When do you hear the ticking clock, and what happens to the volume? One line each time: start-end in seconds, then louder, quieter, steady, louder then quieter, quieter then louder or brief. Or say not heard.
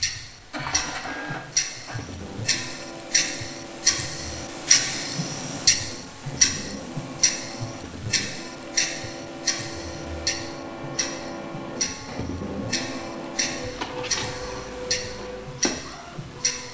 0.0-16.6 louder then quieter.